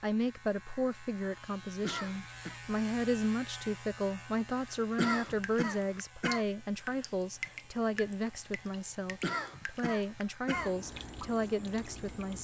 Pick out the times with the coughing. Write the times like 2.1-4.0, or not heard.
1.8-2.6, 5.0-6.5, 9.2-10.8.